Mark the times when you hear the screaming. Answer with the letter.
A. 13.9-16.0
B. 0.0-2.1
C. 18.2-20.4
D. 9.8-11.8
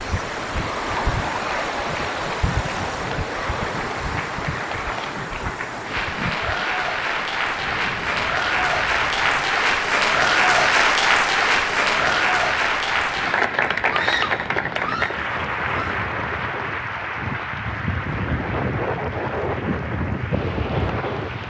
A.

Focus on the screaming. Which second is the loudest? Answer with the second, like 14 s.
14 s.